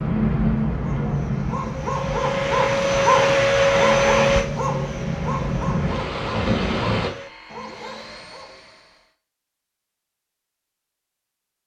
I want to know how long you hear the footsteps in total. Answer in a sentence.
The footsteps can't be heard in this clip.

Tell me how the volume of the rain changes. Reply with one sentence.
The loudness of the rain goes down, then up.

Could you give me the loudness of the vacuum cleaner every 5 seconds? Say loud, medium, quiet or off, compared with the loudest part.
loud, quiet, off.